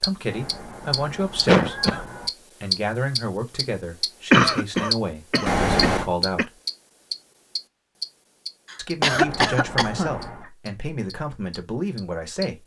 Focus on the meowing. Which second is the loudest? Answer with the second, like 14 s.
6 s.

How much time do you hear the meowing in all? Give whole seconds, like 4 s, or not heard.
4 s.